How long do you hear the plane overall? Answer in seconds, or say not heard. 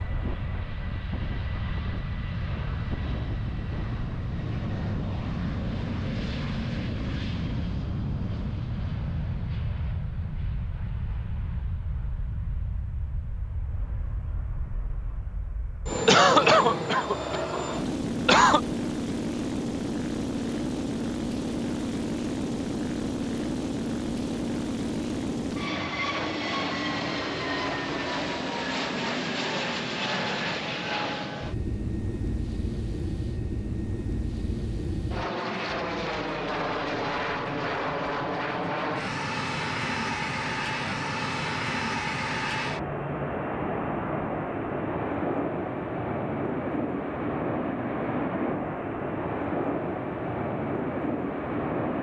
52 s.